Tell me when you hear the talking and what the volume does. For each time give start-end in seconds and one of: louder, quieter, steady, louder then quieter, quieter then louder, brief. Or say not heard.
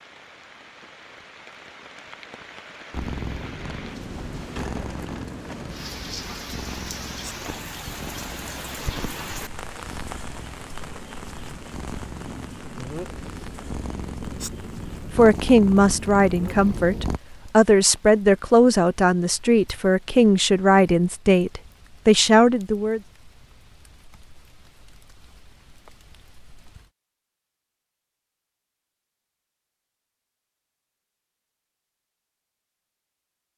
15.2-23.0 steady.